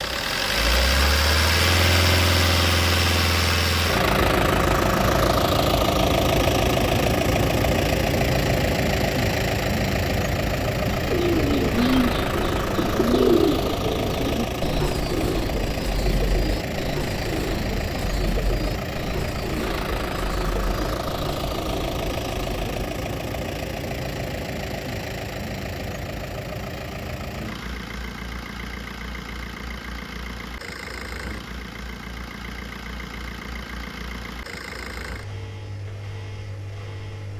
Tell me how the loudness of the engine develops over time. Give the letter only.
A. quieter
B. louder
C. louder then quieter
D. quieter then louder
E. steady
A.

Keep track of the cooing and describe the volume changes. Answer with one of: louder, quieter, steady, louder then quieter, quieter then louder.
quieter.